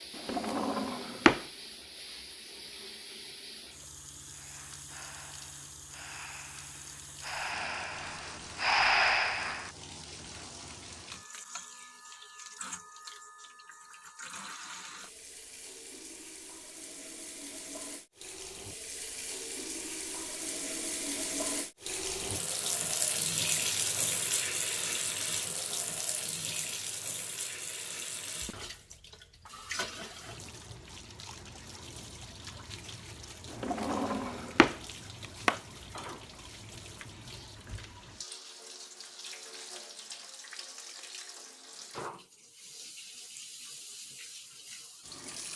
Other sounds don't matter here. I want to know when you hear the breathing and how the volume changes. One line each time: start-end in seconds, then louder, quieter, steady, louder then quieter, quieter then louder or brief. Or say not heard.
4.3-10.2 louder.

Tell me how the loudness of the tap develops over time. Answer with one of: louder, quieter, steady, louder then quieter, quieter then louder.
louder then quieter.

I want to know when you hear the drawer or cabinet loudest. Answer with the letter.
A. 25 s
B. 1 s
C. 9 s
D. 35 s
B.